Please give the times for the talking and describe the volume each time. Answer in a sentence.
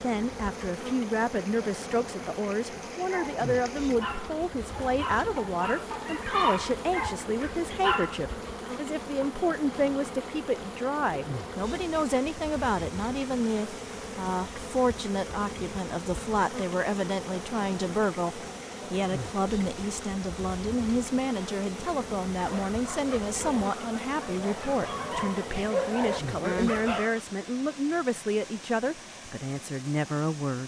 You can hear the talking from 0.0 to 30.6 s, at a steady volume.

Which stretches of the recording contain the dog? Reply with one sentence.
You can hear the dog from 3.0 to 8.3 s and from 22.4 to 27.2 s.